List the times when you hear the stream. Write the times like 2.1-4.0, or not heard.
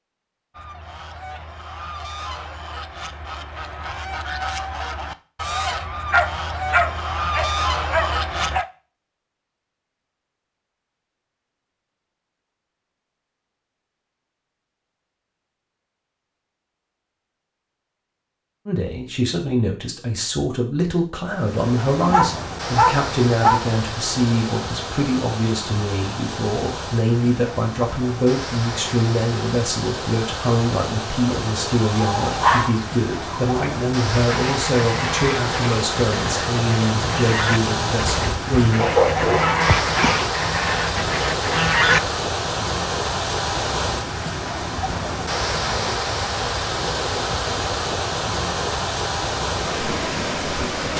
21.2-50.9.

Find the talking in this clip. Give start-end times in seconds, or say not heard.
18.6-38.9.